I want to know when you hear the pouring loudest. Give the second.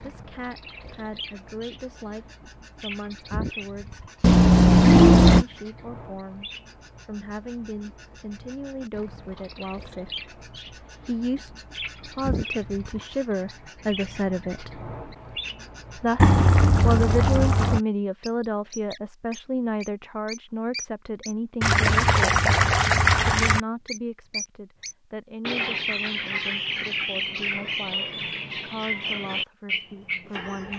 5 s.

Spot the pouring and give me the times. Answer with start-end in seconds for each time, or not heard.
4.2-5.5, 16.1-17.8, 21.6-23.6.